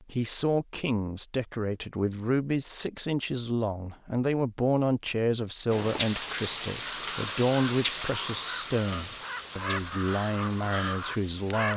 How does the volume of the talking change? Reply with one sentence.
The loudness of the talking stays about the same.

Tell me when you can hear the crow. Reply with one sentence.
The crow can be heard from 6.8 to 11.7 s.